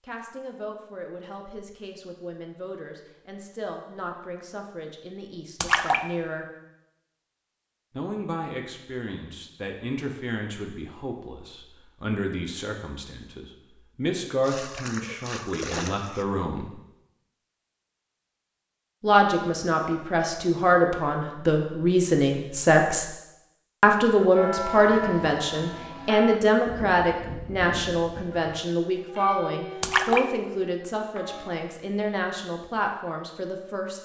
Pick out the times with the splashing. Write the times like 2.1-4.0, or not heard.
5.6-6.0, 14.4-16.2, 29.8-30.2.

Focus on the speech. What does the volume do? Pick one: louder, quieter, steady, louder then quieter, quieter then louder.
louder then quieter.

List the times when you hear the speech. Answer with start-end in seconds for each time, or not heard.
0.0-6.5, 7.9-16.7, 19.0-23.1, 23.8-33.9.